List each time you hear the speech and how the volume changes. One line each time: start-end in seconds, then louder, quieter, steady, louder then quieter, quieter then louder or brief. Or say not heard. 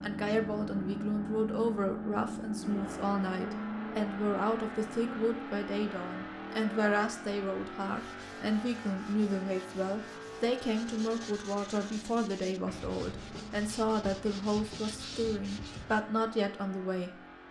0.0-17.1 steady.